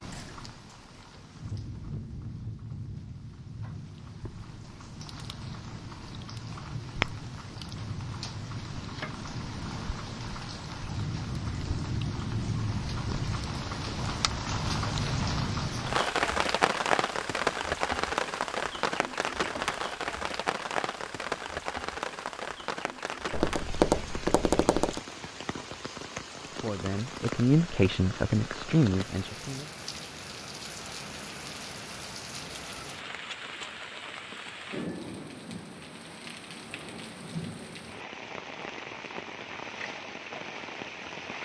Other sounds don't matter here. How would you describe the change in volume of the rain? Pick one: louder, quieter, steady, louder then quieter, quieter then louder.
louder then quieter.